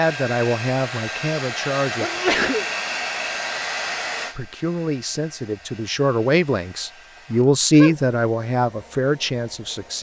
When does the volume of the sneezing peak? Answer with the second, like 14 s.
2 s.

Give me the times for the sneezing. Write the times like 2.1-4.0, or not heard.
2.0-2.6, 7.3-8.0.